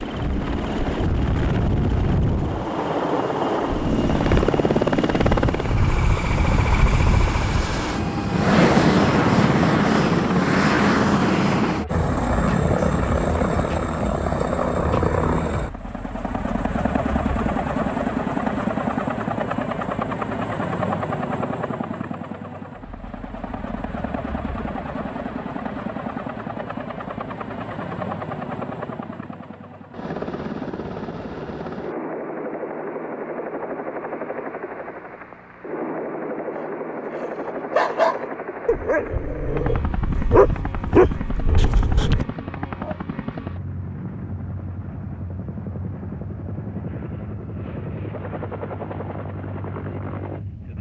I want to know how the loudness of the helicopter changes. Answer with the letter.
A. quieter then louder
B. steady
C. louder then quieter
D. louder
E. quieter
E.